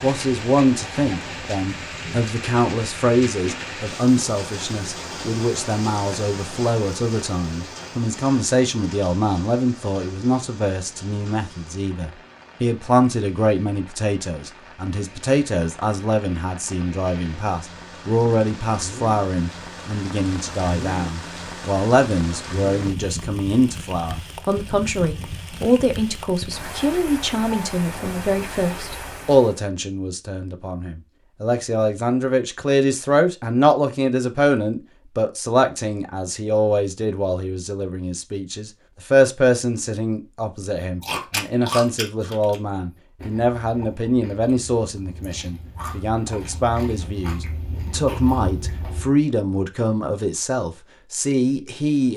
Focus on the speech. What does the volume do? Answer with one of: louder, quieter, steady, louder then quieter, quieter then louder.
steady.